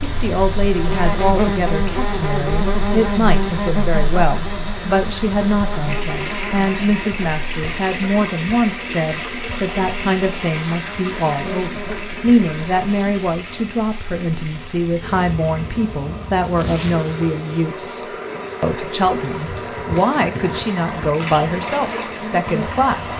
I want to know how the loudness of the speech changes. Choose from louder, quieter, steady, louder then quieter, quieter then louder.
steady.